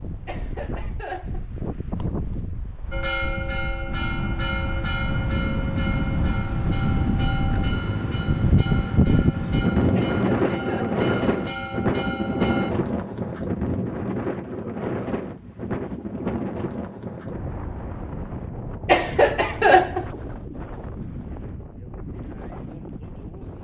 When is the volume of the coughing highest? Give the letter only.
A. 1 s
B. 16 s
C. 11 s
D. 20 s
D.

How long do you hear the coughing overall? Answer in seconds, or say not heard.
3 s.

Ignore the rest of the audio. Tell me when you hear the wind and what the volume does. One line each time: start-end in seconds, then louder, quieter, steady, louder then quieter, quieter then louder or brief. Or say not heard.
0.0-23.5 louder then quieter.